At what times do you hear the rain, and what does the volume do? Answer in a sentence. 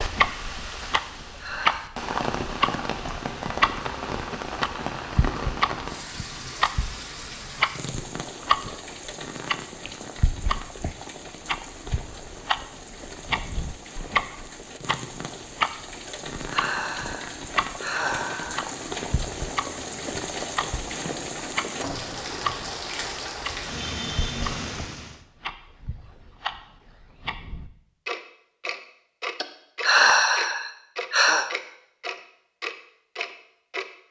You can hear the rain from 0.0 to 25.2 s, getting quieter then louder.